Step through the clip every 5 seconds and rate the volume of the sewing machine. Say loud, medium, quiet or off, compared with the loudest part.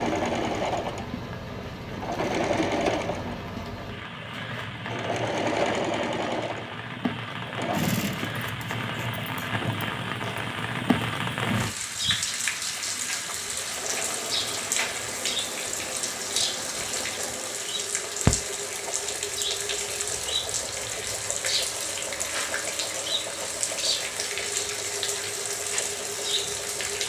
loud, loud, medium, medium, medium, medium.